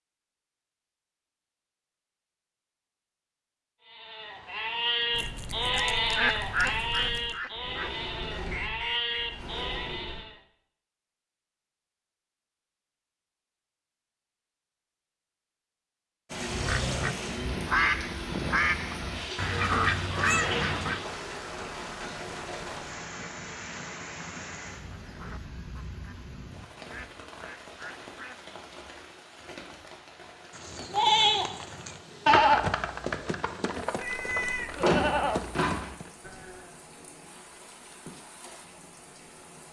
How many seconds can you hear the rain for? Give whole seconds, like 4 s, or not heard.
23 s.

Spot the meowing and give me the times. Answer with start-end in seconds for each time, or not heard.
5.1-7.3, 20.1-20.6, 34.0-34.9.